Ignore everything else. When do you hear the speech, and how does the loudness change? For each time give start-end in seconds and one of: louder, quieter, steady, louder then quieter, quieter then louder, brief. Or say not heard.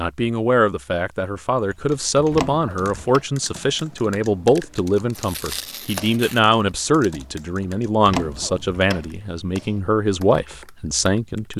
0.0-11.5 steady.